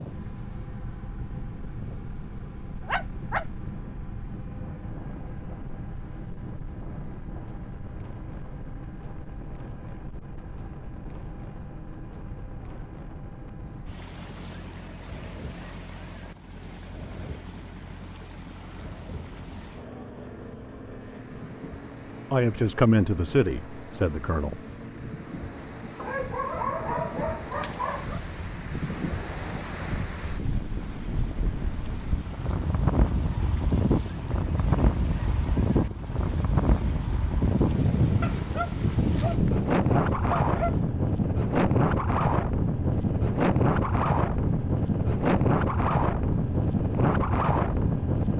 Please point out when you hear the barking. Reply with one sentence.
The barking can be heard from 2.8 to 3.5 s, from 25.9 to 28.2 s and from 38.2 to 40.9 s.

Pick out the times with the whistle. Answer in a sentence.
You can't hear the whistle here.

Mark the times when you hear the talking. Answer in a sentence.
The talking can be heard from 22.3 to 24.6 s.